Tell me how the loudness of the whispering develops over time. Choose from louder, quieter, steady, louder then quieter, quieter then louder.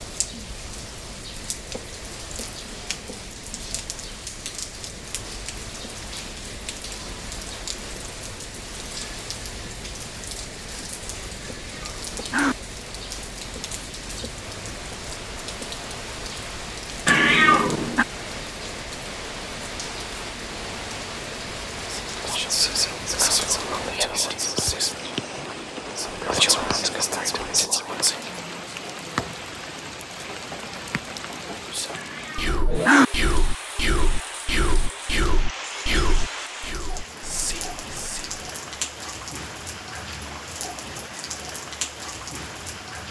quieter.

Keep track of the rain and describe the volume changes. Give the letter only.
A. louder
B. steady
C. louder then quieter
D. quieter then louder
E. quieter
B.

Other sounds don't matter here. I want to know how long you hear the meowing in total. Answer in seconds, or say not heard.
3 s.